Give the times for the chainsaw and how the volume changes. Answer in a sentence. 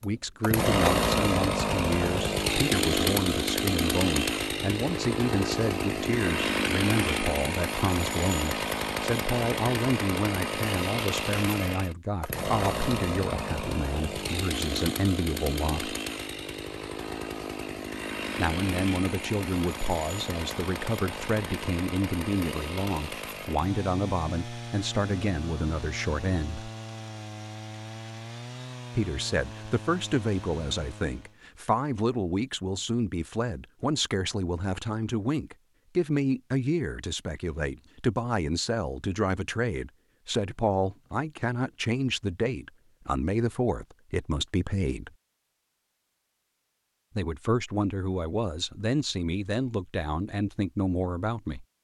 The chainsaw can be heard from 0.0 to 31.4 s, getting quieter.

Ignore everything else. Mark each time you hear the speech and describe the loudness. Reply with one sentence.
The speech can be heard from 0.0 to 15.9 s, at a steady volume; from 18.4 to 26.7 s, at a steady volume; from 28.9 to 45.1 s, at a steady volume; and from 47.1 to 51.6 s, at a steady volume.